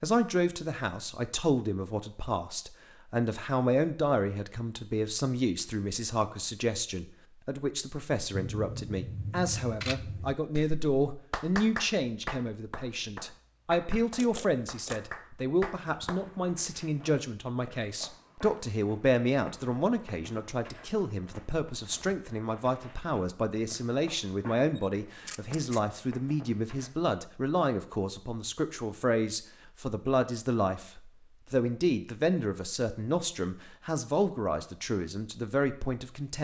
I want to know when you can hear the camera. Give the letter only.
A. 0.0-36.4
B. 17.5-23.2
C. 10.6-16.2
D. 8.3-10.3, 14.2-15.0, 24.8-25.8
D.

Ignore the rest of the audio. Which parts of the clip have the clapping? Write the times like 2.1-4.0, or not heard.
10.6-16.2.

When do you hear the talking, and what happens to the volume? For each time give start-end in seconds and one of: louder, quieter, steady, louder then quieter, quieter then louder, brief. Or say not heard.
0.0-36.4 steady.